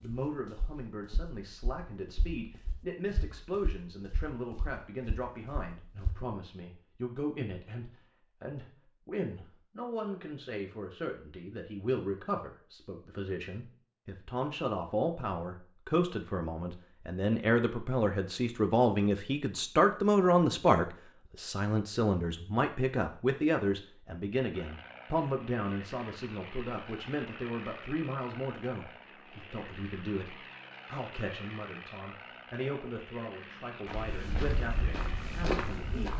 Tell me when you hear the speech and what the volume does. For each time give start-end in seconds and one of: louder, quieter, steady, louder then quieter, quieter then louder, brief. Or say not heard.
0.0-36.1 louder then quieter.